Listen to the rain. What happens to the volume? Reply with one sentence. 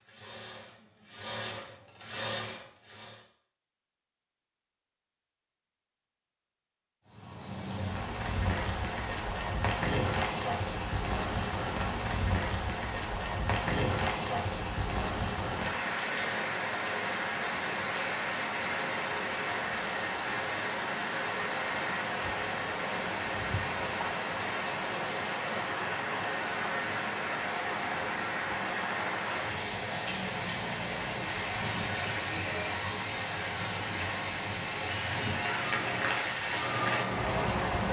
The loudness of the rain stays about the same.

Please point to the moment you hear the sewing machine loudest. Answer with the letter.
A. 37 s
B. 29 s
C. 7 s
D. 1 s
A.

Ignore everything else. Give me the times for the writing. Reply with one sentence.
The writing can't be heard in this clip.